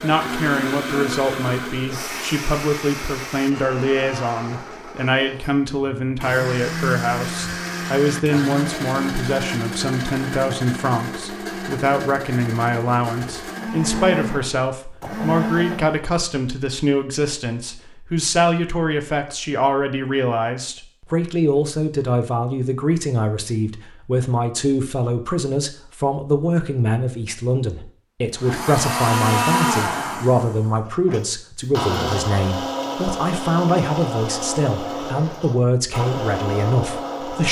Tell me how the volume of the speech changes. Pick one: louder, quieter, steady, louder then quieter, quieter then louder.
steady.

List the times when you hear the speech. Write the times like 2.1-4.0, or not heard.
0.0-37.4.